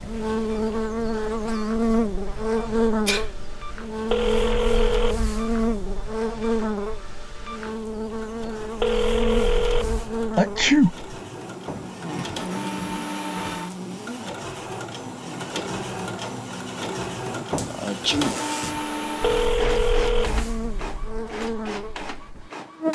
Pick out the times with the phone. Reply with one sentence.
You can hear the phone from 4.0 to 5.9 s, from 8.8 to 10.1 s and from 19.2 to 21.3 s.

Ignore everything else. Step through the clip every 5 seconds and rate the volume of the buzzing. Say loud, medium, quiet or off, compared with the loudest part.
loud, loud, medium, quiet, medium.